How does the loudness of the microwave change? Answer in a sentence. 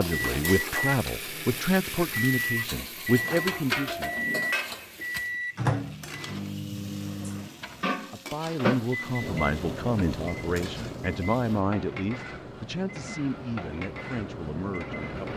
The loudness of the microwave goes down.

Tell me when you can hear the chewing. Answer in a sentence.
You can't hear the chewing here.